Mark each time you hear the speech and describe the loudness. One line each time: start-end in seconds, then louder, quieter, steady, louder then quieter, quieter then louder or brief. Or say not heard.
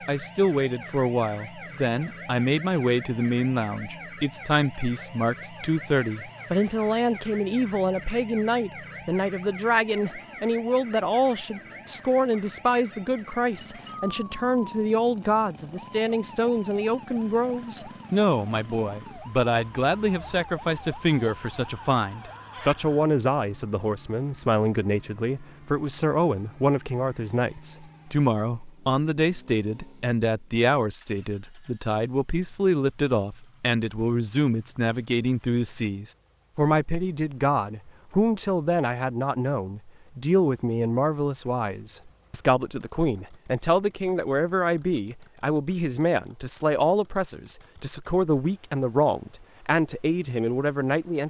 0.1-51.2 steady.